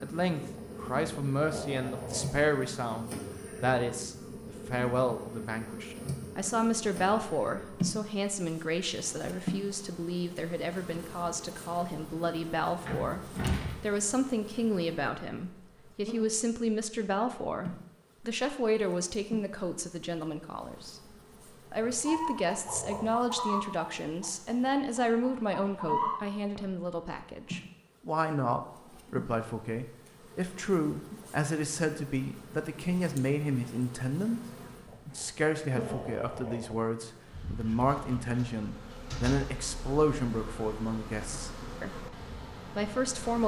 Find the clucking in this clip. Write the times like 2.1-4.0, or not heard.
22.1-26.6.